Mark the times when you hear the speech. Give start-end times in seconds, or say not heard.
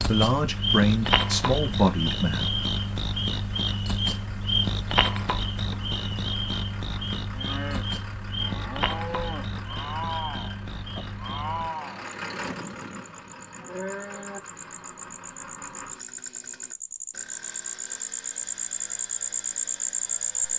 0.0-2.5.